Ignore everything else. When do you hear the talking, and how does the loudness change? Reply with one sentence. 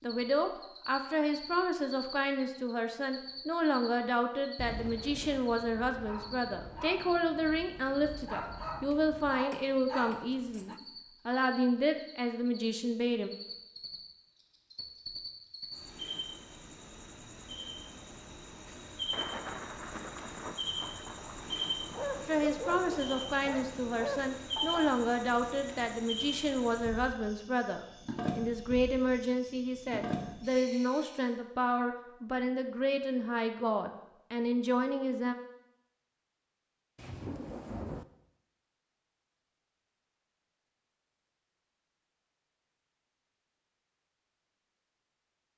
You can hear the talking from 0.0 to 13.3 s, at a steady volume; and from 22.2 to 35.4 s, at a steady volume.